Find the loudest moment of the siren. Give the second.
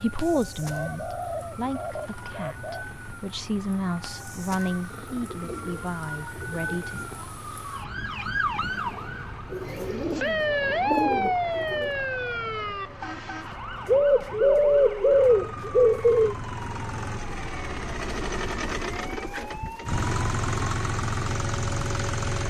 11 s.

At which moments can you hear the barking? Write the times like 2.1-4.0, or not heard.
not heard.